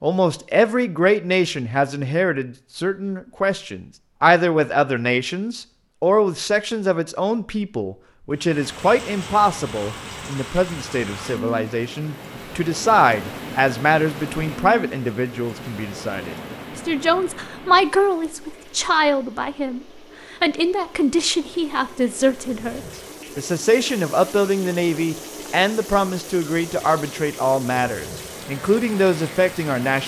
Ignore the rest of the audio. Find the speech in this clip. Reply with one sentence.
The speech can be heard from 0.0 to 30.0 s.